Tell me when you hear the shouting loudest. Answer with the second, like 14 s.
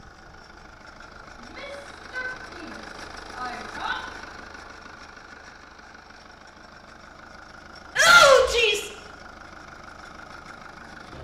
8 s.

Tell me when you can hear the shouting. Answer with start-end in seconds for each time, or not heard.
1.4-4.0, 8.0-8.9.